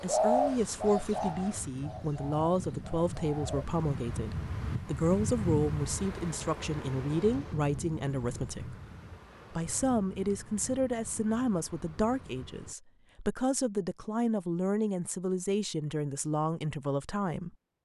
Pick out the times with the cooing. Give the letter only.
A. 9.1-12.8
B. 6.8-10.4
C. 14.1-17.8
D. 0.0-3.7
D.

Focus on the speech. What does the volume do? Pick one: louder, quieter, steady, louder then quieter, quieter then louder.
steady.